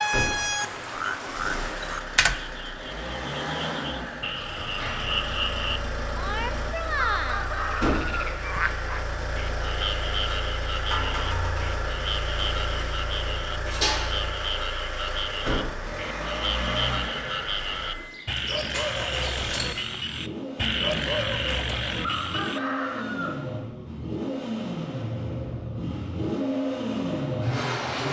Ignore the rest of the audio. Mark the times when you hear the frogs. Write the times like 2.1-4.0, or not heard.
0.0-22.6.